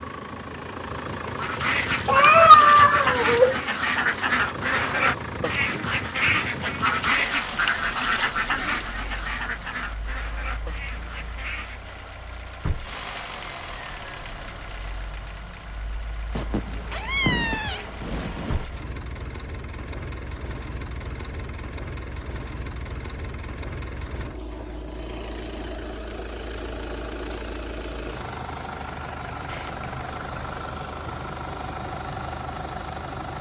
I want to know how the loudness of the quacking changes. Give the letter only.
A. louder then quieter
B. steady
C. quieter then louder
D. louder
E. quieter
E.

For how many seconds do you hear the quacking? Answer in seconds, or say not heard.
11 s.